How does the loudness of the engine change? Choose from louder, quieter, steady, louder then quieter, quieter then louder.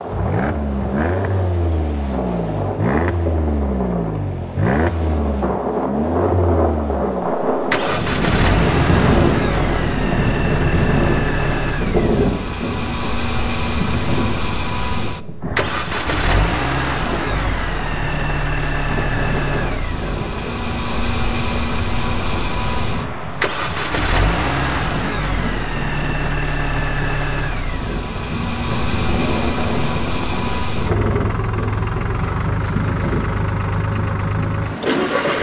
steady.